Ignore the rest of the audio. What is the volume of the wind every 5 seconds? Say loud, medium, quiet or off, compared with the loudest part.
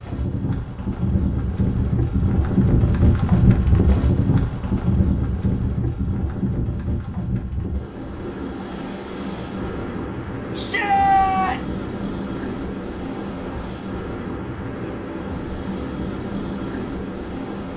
loud, medium, medium, medium.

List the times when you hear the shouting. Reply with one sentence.
The shouting can be heard from 10.6 to 11.7 s.